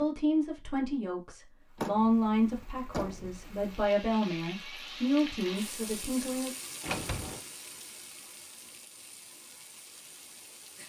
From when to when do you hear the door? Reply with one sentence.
The door can be heard from 1.8 to 3.4 s and from 6.8 to 7.5 s.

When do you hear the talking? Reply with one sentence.
You can hear the talking from 0.0 to 6.5 s.